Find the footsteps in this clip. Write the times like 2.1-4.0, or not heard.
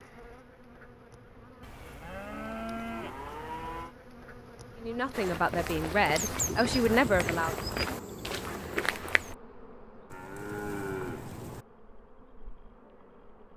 5.1-9.3.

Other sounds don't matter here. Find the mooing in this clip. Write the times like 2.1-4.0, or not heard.
1.6-4.0, 10.1-11.7.